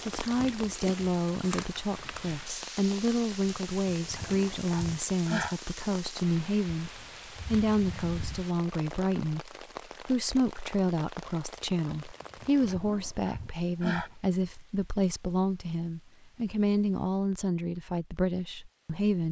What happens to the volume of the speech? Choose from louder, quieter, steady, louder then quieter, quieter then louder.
steady.